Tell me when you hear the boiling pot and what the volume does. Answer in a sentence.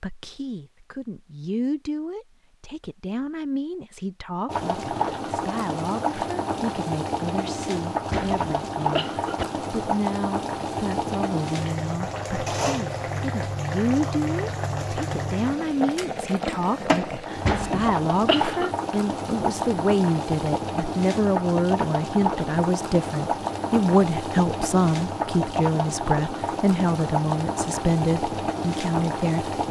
The boiling pot can be heard from 4.5 to 29.6 s, at a steady volume.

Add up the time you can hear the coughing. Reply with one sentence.
You can hear the coughing for 3 seconds altogether.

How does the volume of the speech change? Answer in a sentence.
The loudness of the speech goes up.